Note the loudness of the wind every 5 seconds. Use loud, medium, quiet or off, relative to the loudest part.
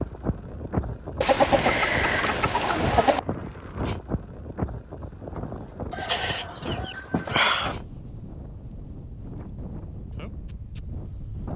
loud, medium, medium.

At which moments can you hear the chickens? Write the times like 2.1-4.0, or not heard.
1.2-3.2, 5.9-7.8.